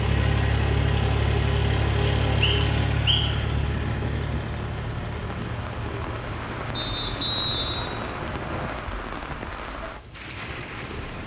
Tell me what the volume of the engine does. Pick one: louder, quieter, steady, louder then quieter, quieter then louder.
quieter.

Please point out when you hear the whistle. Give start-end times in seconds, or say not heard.
2.0-3.5, 6.8-8.8.